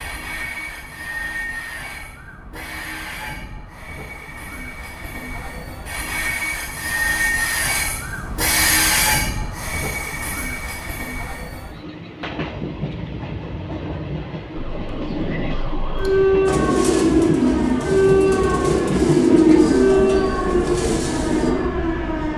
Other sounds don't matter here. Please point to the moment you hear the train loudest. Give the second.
9 s.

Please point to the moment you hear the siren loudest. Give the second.
18 s.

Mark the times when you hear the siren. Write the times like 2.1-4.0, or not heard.
14.8-22.3.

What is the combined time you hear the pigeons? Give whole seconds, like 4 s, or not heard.
5 s.